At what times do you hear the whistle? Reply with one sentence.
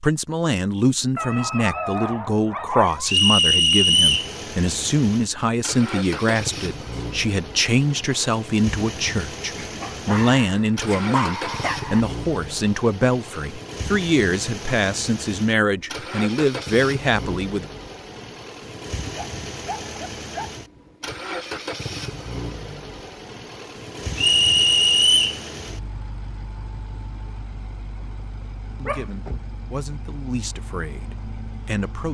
The whistle can be heard from 3.0 to 4.3 s and from 24.1 to 25.4 s.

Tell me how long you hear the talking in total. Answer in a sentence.
The talking can be heard for 21 seconds in total.